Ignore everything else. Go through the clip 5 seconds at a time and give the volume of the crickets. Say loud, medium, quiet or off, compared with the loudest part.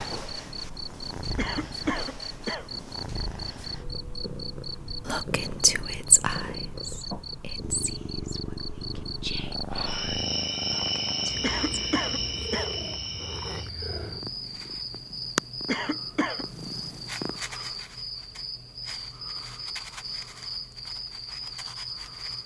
medium, medium, loud, medium, medium.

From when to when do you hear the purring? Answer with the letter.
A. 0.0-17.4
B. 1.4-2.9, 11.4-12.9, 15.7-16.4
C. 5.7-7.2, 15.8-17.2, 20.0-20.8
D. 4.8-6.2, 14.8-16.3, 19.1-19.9
A.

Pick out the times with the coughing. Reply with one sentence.
You can hear the coughing from 1.4 to 2.9 s, from 11.4 to 12.9 s and from 15.7 to 16.4 s.